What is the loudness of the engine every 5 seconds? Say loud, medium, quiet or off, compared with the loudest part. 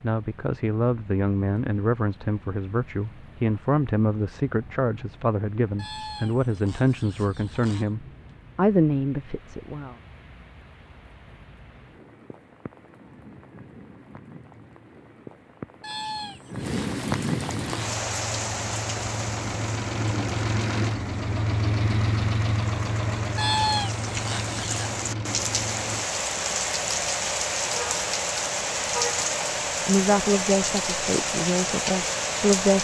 off, off, off, medium, loud, medium, medium.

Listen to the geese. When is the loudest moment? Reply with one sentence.
The volume of the geese peaks at 24 seconds.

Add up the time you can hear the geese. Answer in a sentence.
The geese can be heard for 6 seconds in total.